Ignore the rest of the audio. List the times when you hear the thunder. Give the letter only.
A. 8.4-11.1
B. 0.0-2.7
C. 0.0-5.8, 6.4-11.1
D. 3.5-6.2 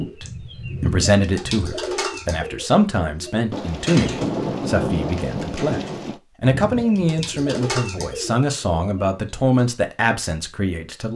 D.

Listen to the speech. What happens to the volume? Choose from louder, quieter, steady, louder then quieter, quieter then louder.
steady.